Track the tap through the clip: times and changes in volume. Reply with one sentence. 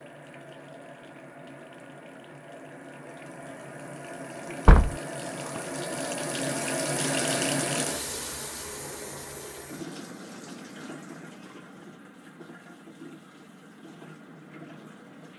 The tap can be heard from 0.0 to 15.3 s, getting louder then quieter.